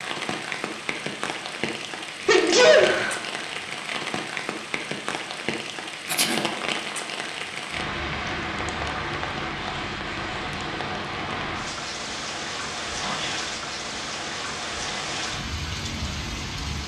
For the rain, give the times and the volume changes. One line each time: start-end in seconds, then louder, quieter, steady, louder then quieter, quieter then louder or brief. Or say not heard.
0.0-16.8 steady.